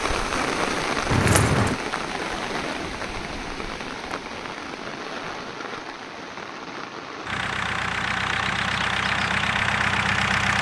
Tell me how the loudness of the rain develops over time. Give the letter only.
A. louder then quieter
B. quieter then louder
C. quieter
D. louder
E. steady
C.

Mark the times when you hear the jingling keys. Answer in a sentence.
You can hear the jingling keys from 1.1 to 1.8 s.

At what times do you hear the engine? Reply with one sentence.
The engine can be heard from 7.2 to 10.5 s.